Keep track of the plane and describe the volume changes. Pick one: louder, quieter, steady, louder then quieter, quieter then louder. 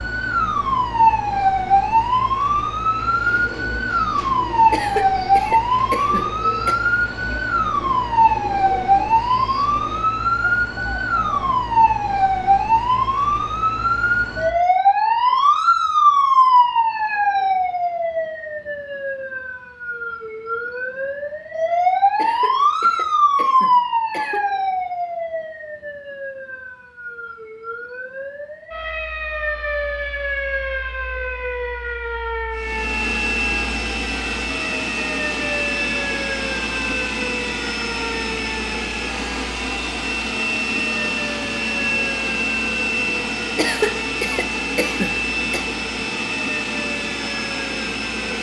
steady.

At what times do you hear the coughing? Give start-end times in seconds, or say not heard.
4.7-6.8, 22.1-24.5, 43.5-45.6.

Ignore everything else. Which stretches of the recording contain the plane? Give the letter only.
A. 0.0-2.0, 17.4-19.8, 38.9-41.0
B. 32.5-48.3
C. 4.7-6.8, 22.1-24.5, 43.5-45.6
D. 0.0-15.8
B.